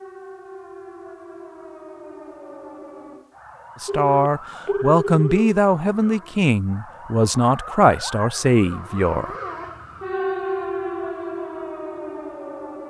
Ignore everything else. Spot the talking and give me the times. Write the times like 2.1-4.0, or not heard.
3.8-9.3.